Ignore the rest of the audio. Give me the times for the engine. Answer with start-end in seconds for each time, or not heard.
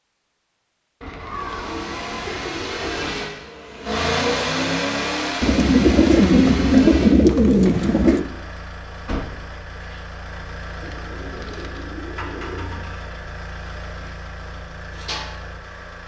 1.2-16.0.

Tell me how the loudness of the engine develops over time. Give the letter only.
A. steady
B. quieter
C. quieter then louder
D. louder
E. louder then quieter
B.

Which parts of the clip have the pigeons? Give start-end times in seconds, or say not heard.
1.0-3.2, 5.4-8.2, 10.8-12.8.